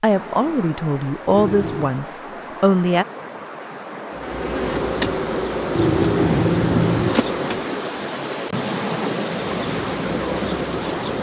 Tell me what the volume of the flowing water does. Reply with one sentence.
The volume of the flowing water goes up.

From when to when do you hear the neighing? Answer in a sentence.
You can hear the neighing from 1.3 to 1.9 s and from 5.7 to 7.2 s.